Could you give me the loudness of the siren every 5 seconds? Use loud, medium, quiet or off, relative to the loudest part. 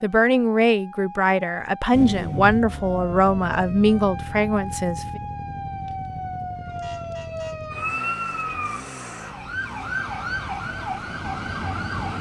medium, loud, loud.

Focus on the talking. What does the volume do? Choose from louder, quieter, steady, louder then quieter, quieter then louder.
steady.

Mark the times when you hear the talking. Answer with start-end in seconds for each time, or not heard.
0.0-5.2.